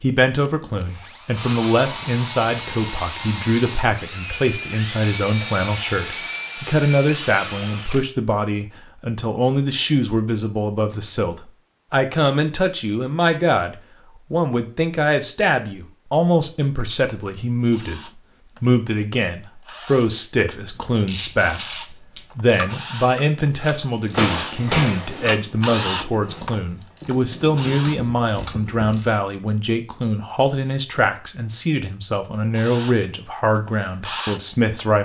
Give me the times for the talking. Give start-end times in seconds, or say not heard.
0.0-35.0.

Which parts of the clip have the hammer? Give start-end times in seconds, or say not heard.
24.1-25.4.